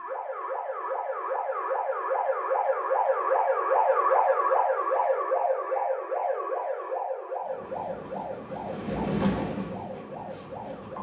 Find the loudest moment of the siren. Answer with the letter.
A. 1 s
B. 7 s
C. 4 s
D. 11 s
C.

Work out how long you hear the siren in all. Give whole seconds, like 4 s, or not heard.
11 s.